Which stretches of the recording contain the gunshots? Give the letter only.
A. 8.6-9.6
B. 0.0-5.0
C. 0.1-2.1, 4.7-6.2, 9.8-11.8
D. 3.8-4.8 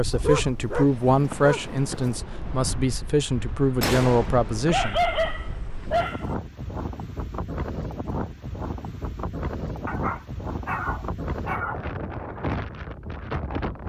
D.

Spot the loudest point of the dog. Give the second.
5 s.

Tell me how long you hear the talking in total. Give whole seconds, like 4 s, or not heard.
5 s.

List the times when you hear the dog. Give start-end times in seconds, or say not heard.
0.1-2.1, 4.7-6.2, 9.8-11.8.